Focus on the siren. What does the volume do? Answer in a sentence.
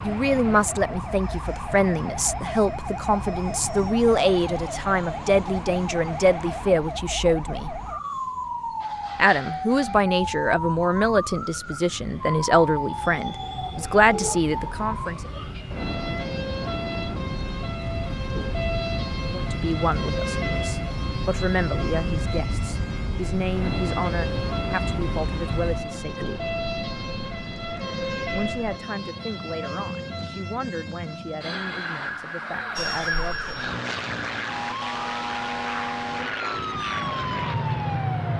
The volume of the siren stays about the same.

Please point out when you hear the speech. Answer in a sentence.
The speech can be heard from 0.0 to 7.8 s, from 9.2 to 15.3 s, from 19.2 to 26.4 s and from 28.3 to 33.6 s.